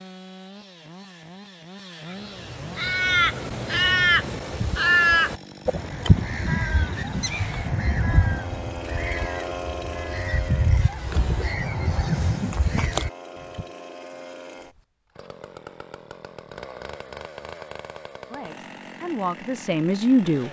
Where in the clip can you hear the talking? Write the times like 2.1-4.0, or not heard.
18.3-20.4.